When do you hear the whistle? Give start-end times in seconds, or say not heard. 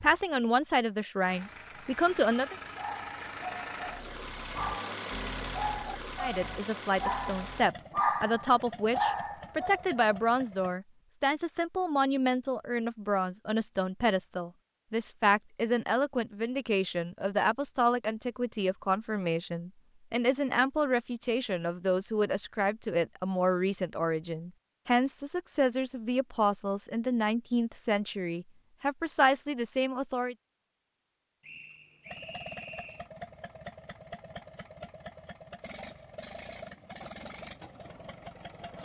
31.4-33.1.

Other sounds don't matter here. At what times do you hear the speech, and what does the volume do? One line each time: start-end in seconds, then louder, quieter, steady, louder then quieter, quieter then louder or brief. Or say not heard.
0.0-2.5 brief
6.2-30.4 steady.